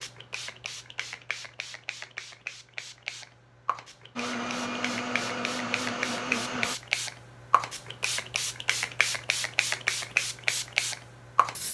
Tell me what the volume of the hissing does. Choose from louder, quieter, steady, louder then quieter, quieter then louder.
louder.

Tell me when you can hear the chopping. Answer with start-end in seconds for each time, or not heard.
not heard.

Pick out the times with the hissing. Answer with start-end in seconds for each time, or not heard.
0.0-11.6.